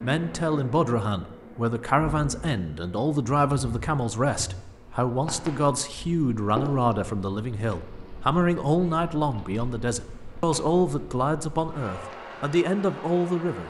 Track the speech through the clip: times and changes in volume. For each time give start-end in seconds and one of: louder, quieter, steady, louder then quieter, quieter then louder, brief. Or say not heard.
0.0-13.6 steady.